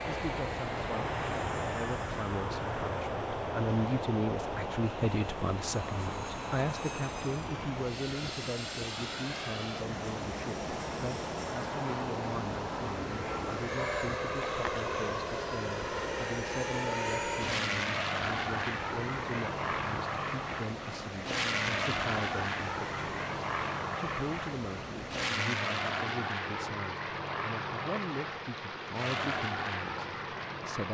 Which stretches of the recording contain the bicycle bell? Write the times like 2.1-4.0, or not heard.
not heard.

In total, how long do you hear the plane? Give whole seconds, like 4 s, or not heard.
31 s.